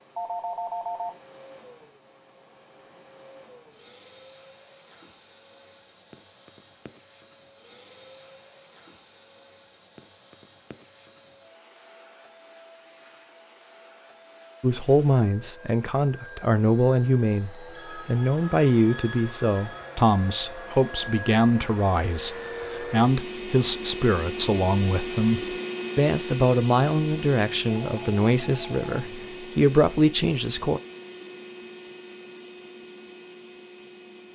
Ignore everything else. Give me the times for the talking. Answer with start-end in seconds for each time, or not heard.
14.6-30.8.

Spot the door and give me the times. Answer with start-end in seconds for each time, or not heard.
not heard.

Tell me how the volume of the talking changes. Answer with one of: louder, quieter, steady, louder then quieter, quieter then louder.
steady.